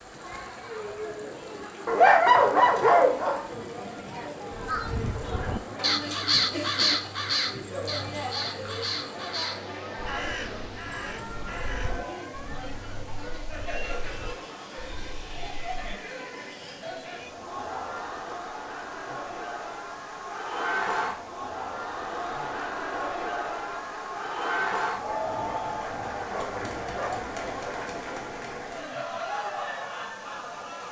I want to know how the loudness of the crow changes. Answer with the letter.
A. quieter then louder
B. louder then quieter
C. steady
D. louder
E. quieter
E.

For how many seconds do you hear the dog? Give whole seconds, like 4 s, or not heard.
4 s.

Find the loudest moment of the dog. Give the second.
2 s.